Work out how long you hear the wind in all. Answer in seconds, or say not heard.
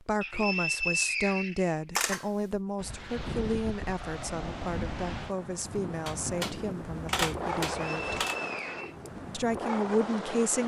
8 s.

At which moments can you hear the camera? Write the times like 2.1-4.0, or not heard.
1.9-2.6, 6.0-8.3.